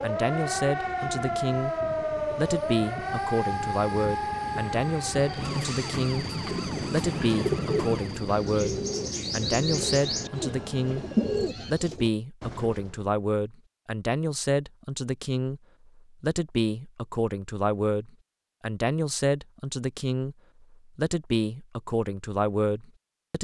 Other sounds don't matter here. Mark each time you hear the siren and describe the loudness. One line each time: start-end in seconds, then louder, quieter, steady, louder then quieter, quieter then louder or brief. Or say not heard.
0.0-8.3 quieter.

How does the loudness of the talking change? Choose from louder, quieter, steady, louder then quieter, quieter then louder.
steady.